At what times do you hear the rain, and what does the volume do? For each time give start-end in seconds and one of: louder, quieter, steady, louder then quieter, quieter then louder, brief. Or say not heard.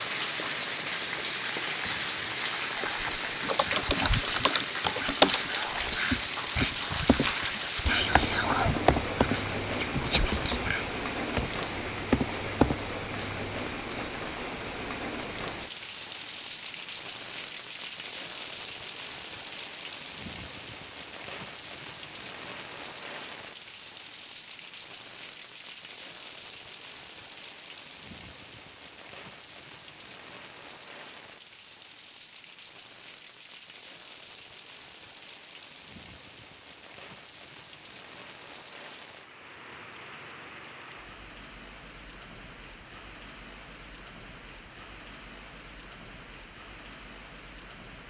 0.0-48.0 quieter.